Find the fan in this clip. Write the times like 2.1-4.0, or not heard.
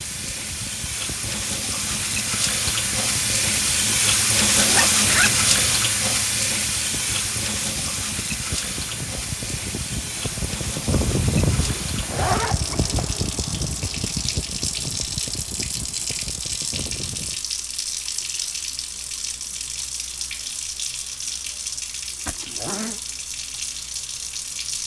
0.0-17.4.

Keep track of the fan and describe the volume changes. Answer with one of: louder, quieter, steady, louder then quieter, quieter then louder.
louder then quieter.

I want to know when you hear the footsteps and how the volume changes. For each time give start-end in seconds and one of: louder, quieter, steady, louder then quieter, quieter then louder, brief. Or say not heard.
not heard.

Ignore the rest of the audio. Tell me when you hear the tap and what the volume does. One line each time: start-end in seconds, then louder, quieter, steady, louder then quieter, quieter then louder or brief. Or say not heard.
0.0-24.8 quieter.